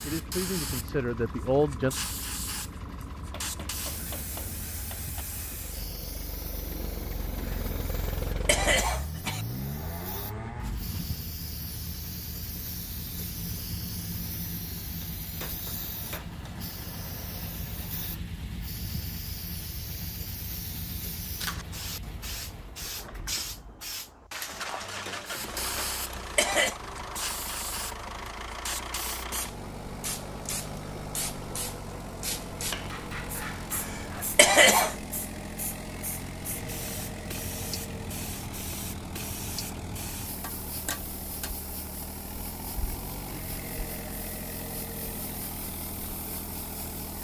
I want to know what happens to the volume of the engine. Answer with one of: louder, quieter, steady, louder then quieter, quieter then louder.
steady.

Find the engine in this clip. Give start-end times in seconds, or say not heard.
0.0-47.1.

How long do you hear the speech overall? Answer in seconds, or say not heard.
2 s.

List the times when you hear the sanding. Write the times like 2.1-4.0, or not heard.
not heard.